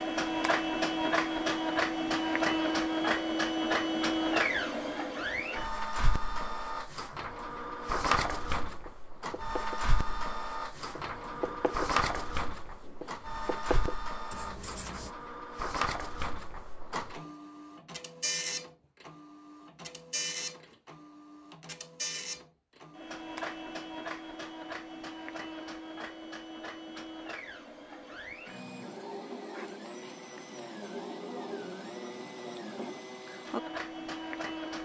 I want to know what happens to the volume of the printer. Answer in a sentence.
The loudness of the printer goes down.